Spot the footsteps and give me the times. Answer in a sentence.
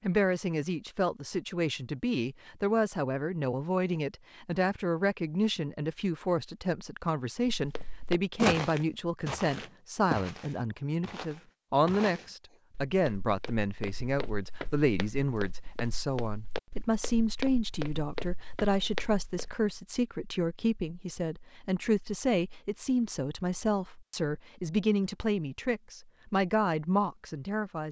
You can hear the footsteps from 7.5 to 19.6 s.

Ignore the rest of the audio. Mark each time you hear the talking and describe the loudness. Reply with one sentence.
The talking can be heard from 0.0 to 27.8 s, at a steady volume.